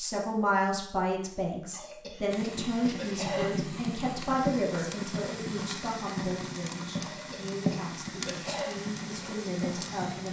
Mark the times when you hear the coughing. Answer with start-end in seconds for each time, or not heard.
1.7-3.5, 7.0-8.8.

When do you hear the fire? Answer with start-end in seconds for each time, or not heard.
2.3-10.2.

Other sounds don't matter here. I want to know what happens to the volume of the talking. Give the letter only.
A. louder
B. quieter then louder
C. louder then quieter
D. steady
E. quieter
E.